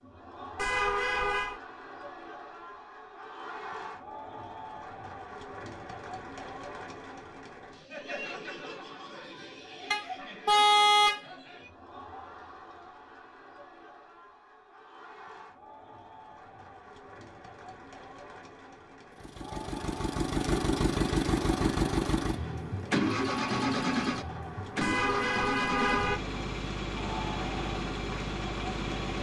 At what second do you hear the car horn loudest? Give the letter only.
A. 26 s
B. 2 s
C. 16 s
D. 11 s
D.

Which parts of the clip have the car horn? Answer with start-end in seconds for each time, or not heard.
0.6-1.6, 9.9-11.2, 24.8-26.2.